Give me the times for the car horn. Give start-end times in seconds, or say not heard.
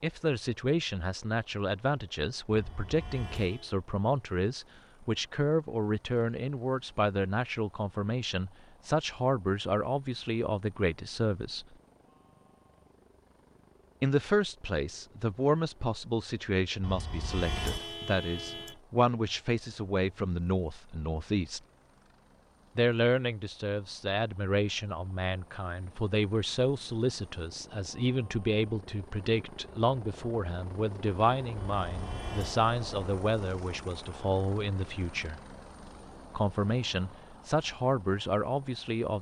2.5-3.8, 16.8-18.8, 31.8-32.7.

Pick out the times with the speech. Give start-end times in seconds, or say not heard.
0.0-11.7, 14.0-21.6, 22.8-35.4, 36.3-39.1.